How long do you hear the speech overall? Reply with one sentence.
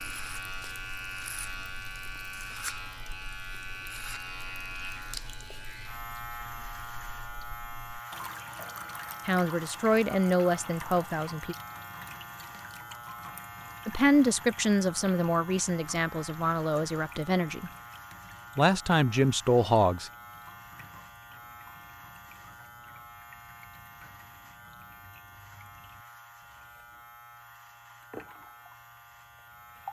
You can hear the speech for 8 seconds altogether.